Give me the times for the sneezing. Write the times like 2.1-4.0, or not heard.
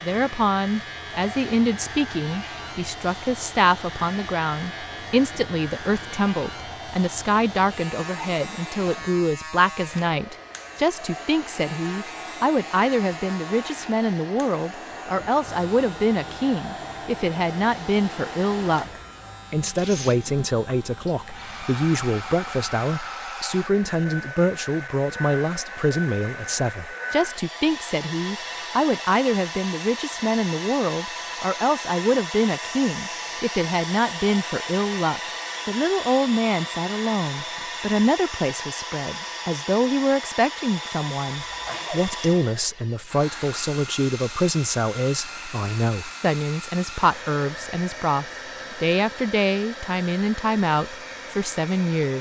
41.3-42.1.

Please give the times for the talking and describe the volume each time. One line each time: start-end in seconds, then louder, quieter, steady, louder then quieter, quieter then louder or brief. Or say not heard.
0.0-52.1 steady.